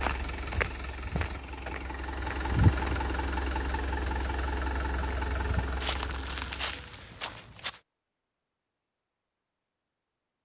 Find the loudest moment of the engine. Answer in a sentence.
The loudest moment of the engine is at 3 seconds.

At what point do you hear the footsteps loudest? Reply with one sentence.
The volume of the footsteps peaks at 3 seconds.